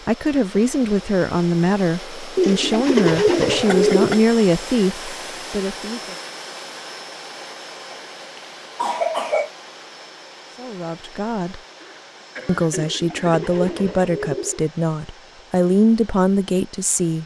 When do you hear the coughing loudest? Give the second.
9 s.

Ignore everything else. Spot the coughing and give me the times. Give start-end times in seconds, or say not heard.
3.5-4.2, 7.9-9.5, 11.8-13.2.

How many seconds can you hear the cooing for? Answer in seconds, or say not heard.
4 s.